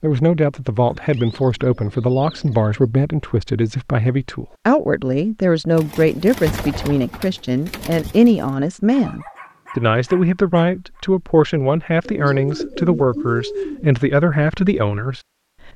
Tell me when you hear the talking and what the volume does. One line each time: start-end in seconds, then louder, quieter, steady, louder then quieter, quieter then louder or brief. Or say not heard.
0.0-15.7 steady.